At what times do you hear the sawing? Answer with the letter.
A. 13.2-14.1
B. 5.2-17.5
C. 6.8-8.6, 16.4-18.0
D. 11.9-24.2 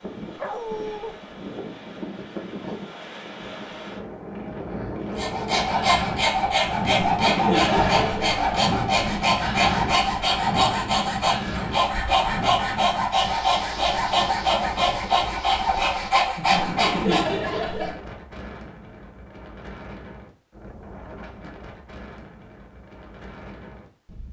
B.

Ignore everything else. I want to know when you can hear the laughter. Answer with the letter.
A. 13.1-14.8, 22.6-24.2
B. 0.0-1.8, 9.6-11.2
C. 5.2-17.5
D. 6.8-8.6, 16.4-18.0
D.